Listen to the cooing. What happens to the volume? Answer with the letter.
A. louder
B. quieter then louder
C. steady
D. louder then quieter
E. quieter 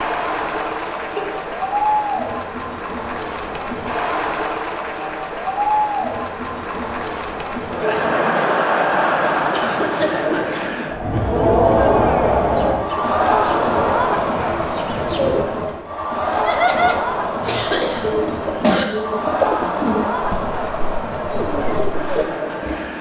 D.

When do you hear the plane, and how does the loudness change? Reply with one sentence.
You can't hear the plane here.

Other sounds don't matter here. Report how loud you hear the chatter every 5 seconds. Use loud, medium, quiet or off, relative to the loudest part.
medium, loud, loud, medium, medium.